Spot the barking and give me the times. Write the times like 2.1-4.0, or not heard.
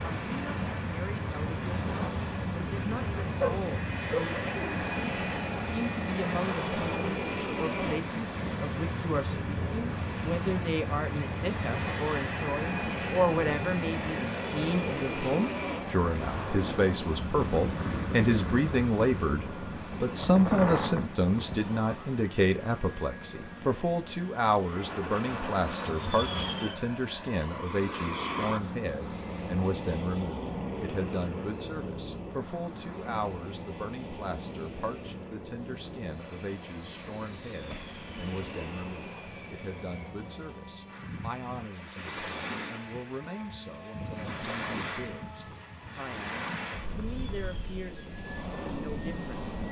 3.4-4.8.